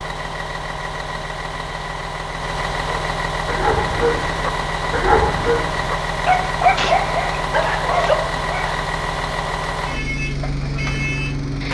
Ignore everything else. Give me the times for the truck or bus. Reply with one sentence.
You can hear the truck or bus from 0.0 to 11.7 s.